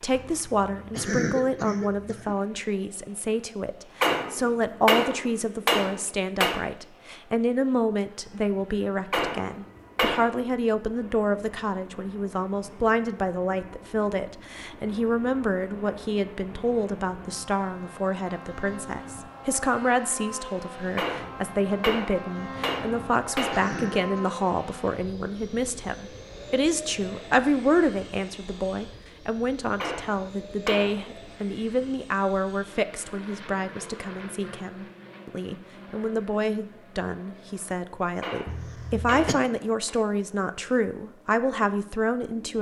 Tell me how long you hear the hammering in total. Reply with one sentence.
You can hear the hammering for 10 seconds altogether.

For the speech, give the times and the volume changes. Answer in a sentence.
You can hear the speech from 0.0 to 42.5 s, at a steady volume.